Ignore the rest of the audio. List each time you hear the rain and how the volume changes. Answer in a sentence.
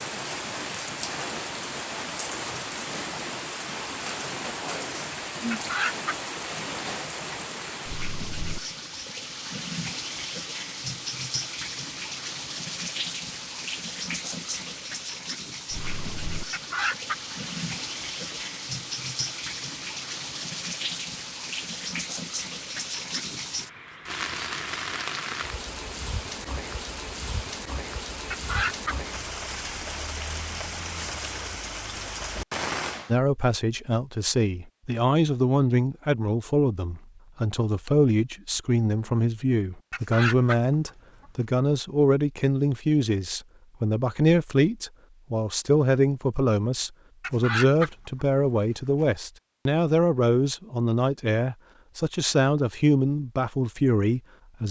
The rain can be heard from 0.0 to 33.1 s, at a steady volume.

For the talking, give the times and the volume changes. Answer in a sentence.
The talking can be heard from 33.0 to 54.6 s, at a steady volume.